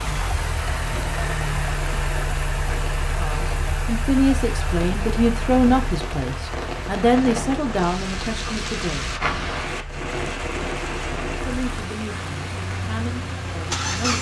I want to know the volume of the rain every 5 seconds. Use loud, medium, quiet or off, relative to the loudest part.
medium, loud, loud.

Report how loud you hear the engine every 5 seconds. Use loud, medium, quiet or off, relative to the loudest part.
loud, medium, loud.